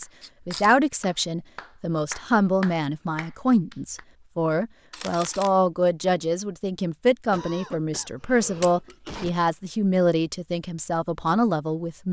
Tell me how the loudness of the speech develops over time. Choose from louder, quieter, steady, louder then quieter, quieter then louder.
steady.